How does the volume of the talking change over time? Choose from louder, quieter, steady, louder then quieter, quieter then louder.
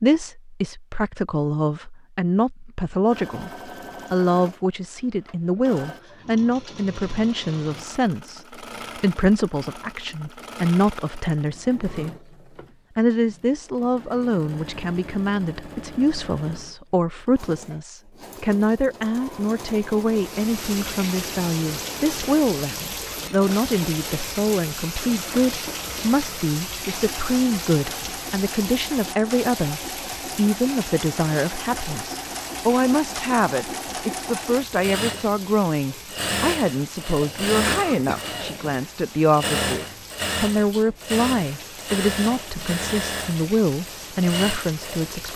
steady.